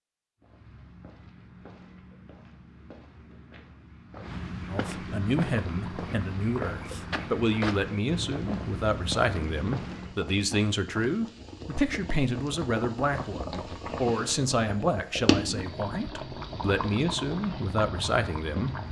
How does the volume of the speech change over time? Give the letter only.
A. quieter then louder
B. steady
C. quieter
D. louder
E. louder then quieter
B.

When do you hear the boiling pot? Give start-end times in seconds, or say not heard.
5.2-18.8.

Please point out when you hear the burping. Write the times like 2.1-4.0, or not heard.
not heard.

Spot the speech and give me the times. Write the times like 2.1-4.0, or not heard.
4.7-18.8.